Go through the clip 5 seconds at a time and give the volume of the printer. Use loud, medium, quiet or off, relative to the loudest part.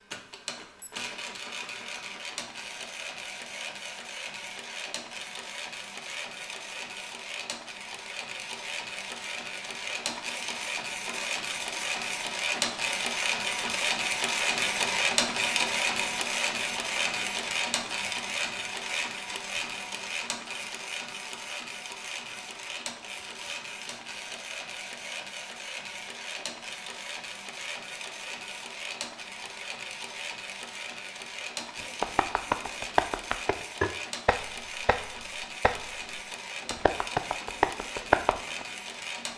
medium, medium, loud, loud, medium, medium, medium, medium.